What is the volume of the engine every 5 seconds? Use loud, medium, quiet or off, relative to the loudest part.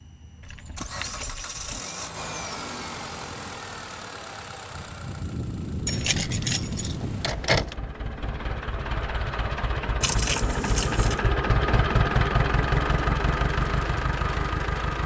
medium, medium, loud.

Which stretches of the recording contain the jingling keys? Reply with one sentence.
The jingling keys can be heard from 0.4 to 1.8 s, from 5.8 to 7.8 s and from 10.0 to 11.2 s.